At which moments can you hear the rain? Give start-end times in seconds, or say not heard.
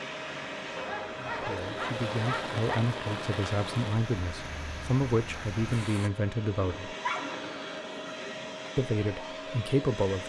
0.0-6.1.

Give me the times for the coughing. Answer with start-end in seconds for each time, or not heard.
not heard.